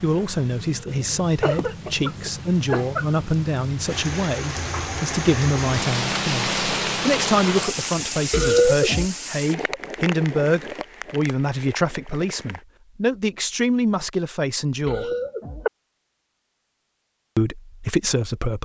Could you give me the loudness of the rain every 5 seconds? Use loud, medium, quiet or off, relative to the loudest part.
medium, loud, medium, off.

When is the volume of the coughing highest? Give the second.
9 s.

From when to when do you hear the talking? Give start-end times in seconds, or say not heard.
0.0-15.1, 17.4-18.5.